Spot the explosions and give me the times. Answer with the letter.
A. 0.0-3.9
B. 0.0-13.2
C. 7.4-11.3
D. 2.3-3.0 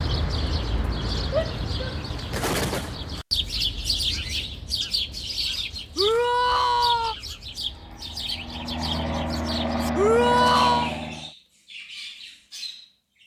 D.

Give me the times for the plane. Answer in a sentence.
You can hear the plane from 7.4 to 11.3 s.